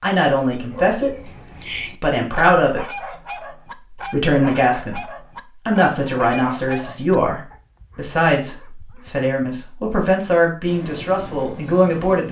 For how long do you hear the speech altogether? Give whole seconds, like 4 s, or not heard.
11 s.